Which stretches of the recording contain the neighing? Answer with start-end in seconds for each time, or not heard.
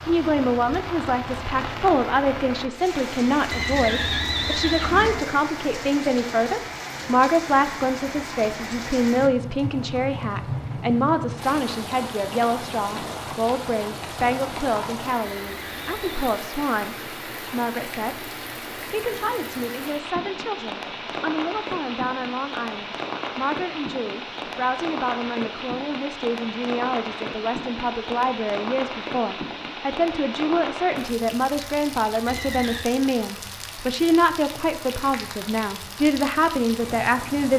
3.5-5.2, 15.3-16.4, 32.2-32.9.